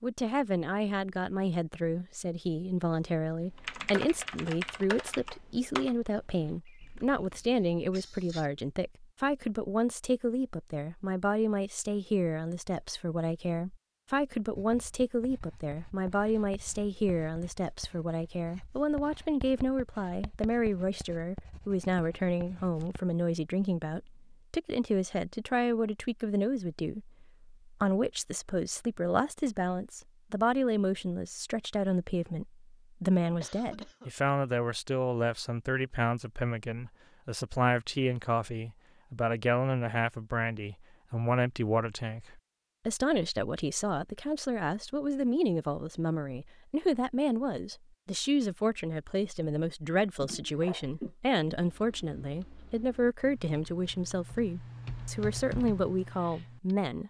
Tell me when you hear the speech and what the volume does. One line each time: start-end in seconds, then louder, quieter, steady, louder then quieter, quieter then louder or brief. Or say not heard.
0.0-57.0 steady.